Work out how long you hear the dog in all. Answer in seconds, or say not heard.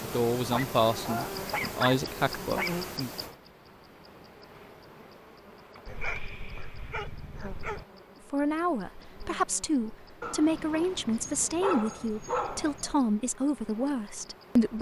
7 s.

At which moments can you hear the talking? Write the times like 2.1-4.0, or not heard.
0.0-3.1, 8.3-14.7.